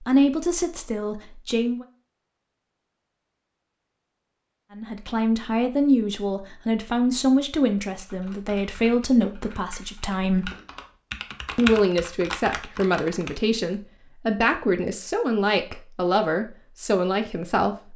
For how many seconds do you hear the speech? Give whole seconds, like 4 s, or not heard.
14 s.